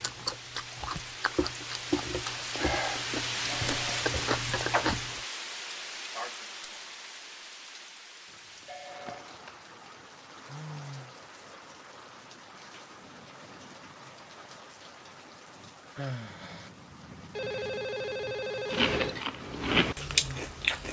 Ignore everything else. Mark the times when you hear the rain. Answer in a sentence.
The rain can be heard from 0.0 to 20.8 s.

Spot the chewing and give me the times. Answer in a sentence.
You can hear the chewing from 0.0 to 5.0 s and from 18.7 to 20.8 s.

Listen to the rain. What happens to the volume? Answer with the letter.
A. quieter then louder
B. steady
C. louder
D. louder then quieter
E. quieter
E.